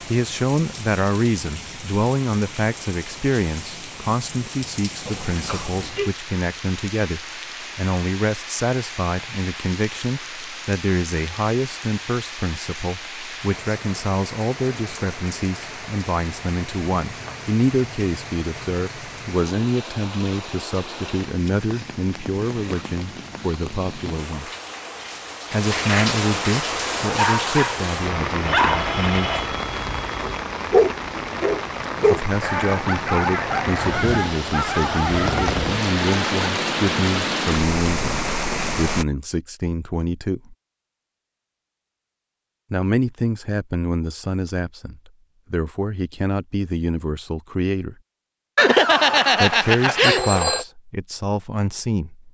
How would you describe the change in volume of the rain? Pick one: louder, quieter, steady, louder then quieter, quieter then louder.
louder.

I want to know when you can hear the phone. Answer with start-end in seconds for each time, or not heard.
5.0-6.1, 28.4-30.4, 48.5-50.6.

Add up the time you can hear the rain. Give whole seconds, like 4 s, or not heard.
39 s.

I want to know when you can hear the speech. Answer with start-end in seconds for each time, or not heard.
0.0-24.5, 25.5-29.4, 32.0-40.5, 42.7-48.0, 49.4-52.3.